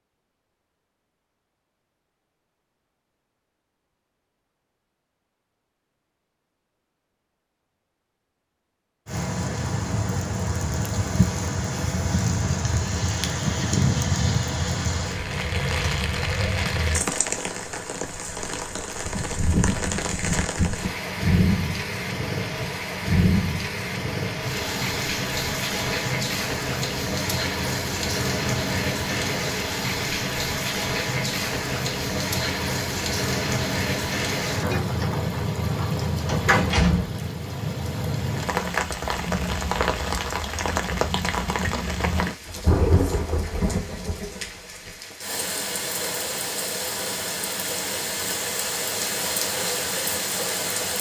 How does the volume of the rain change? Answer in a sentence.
The volume of the rain stays about the same.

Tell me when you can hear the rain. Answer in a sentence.
You can hear the rain from 9.1 to 50.9 s.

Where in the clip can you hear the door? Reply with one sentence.
You can hear the door from 36.2 to 37.1 s.